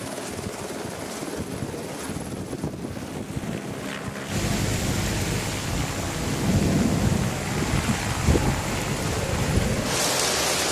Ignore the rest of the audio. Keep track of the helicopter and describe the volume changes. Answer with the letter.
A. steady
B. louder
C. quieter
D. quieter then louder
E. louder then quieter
A.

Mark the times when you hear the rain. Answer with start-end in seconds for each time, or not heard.
4.2-10.6.